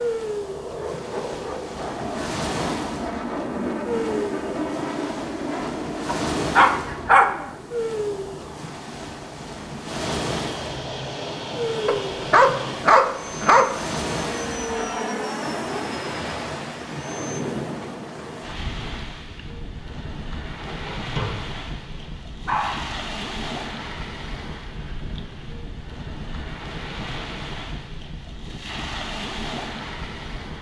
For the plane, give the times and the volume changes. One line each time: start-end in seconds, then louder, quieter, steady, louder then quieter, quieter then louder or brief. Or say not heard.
0.0-17.4 quieter then louder.